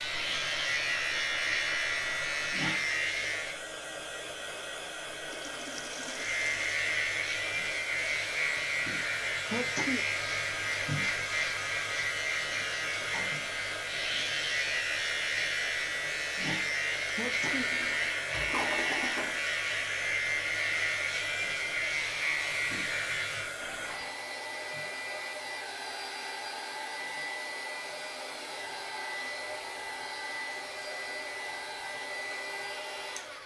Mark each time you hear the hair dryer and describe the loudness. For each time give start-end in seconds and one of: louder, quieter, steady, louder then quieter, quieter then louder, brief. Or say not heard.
0.0-33.4 steady.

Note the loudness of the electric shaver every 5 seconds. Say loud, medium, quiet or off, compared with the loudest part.
loud, loud, loud, loud, loud, quiet, quiet.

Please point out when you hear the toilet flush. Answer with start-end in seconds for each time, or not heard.
5.2-6.8, 17.5-19.4, 23.6-24.2.